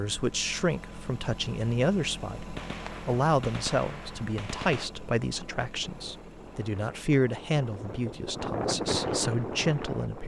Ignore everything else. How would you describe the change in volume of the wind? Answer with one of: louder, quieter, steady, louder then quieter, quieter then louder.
louder.